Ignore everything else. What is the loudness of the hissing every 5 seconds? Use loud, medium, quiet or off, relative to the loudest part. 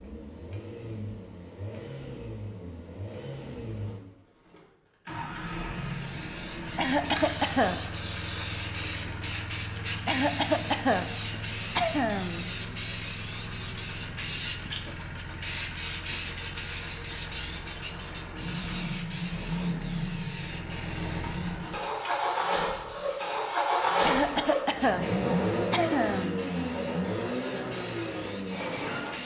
off, loud, loud, loud, medium, medium.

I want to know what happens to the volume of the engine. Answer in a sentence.
The loudness of the engine goes up.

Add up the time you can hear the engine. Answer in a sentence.
The engine can be heard for 29 seconds in total.